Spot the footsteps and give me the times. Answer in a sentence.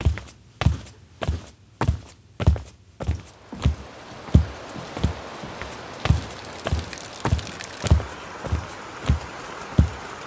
You can hear the footsteps from 0.0 to 10.0 s.